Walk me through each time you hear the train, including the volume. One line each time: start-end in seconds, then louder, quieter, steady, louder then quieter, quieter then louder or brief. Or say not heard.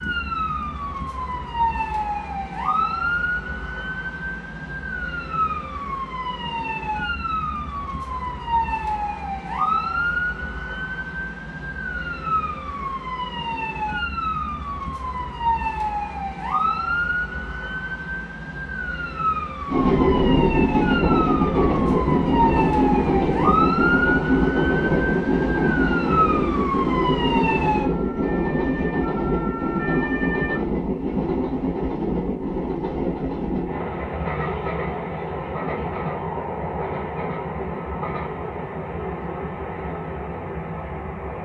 19.6-41.4 quieter.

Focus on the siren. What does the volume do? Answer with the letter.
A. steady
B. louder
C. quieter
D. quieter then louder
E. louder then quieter
A.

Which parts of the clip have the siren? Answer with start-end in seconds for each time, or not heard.
0.0-30.6.